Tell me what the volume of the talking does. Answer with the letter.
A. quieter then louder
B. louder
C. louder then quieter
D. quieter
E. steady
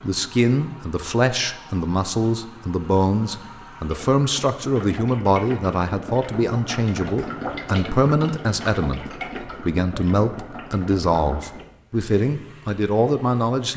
E.